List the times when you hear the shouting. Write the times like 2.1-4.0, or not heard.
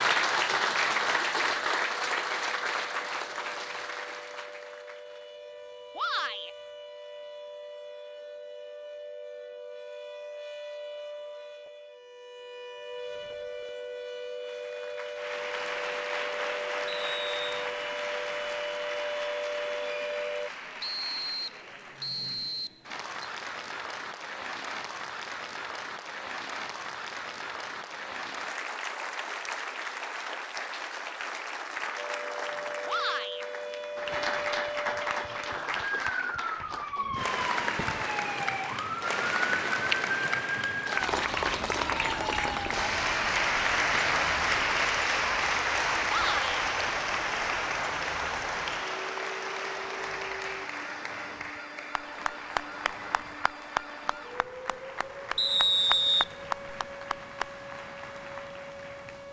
6.0-6.5, 32.9-33.5, 46.0-46.6.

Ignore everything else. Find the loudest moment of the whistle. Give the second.
56 s.